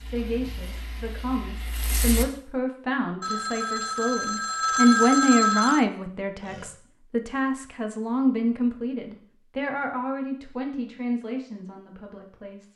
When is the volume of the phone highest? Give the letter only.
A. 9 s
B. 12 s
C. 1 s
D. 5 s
D.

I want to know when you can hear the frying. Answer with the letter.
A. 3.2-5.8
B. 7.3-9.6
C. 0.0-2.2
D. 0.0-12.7
C.